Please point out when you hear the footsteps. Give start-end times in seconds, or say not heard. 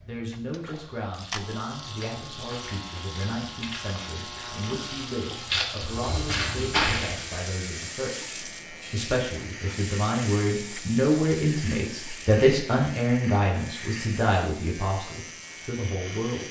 1.9-7.5.